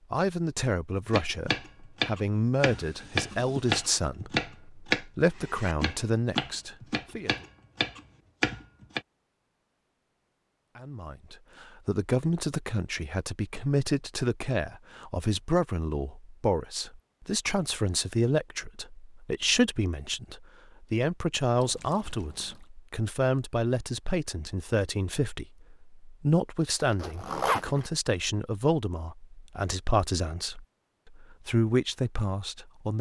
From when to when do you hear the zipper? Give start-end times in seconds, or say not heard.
26.8-27.9.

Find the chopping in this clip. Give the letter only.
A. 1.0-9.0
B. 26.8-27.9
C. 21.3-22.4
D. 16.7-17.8
A.